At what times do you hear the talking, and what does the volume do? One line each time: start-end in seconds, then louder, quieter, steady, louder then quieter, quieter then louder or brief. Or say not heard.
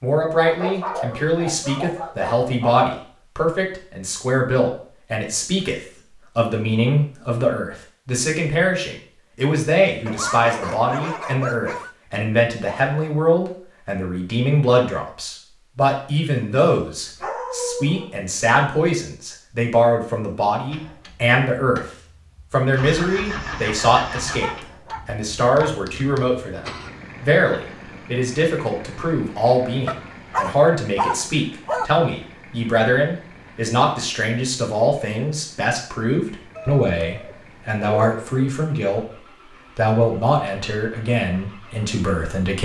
0.0-21.9 steady
22.5-39.0 steady
39.8-42.6 brief.